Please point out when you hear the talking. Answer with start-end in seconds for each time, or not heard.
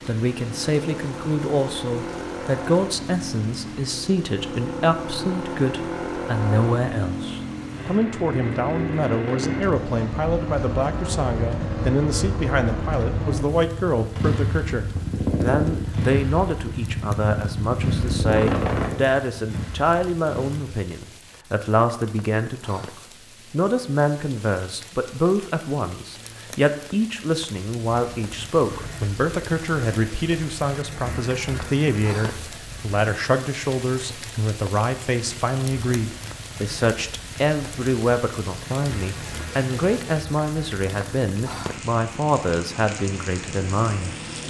0.1-44.4.